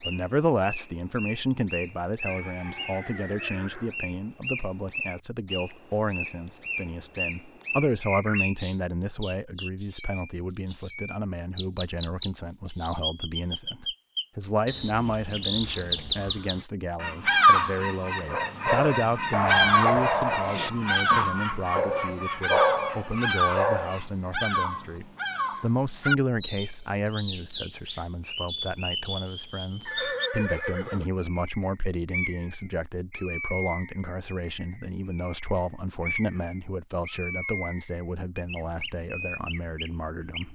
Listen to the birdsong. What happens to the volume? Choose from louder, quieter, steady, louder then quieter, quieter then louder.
louder then quieter.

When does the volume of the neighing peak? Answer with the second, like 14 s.
30 s.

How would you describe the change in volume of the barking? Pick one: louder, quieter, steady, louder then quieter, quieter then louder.
quieter then louder.